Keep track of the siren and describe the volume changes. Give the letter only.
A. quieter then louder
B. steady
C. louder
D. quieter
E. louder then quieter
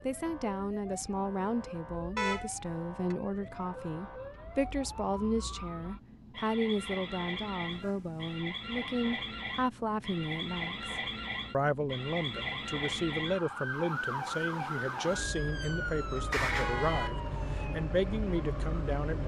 C.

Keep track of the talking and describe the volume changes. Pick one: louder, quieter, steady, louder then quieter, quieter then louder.
steady.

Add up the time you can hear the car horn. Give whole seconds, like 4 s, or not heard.
3 s.